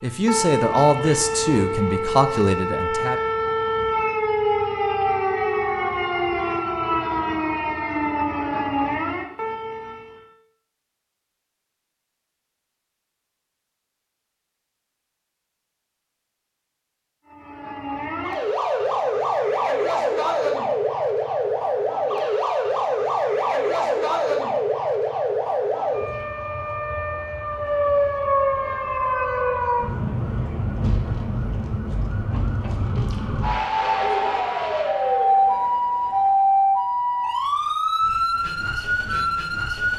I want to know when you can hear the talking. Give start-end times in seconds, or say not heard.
0.0-3.2.